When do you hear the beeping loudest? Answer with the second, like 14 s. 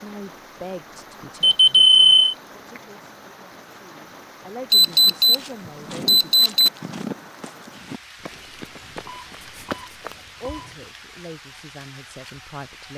2 s.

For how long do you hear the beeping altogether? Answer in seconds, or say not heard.
4 s.